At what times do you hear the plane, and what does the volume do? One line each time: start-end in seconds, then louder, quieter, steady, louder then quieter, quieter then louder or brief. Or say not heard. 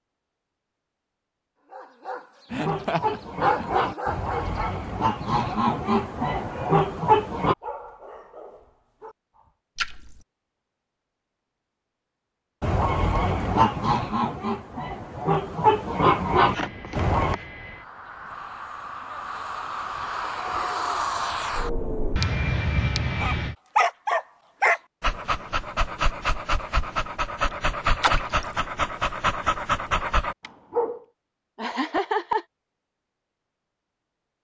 16.4-23.6 louder.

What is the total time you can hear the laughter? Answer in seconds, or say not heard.
3 s.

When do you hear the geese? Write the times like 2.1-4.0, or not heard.
2.5-7.5, 12.6-17.4.